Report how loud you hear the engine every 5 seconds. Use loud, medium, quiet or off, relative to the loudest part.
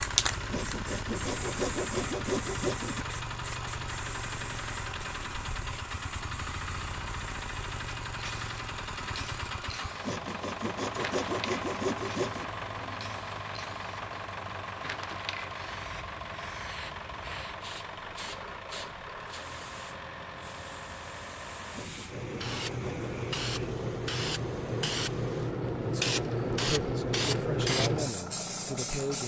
loud, loud, loud, loud, medium, medium.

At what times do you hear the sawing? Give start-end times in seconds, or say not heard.
0.5-3.2, 10.0-12.5, 21.8-23.3.